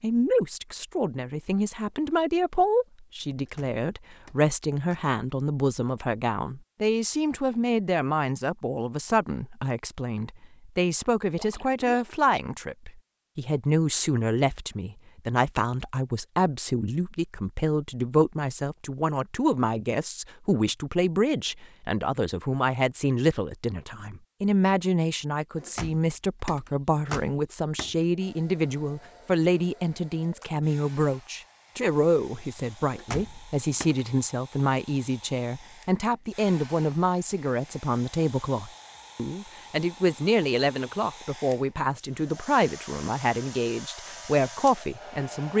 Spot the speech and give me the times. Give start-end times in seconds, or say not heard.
0.0-45.5.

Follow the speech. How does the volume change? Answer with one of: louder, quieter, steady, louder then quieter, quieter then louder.
steady.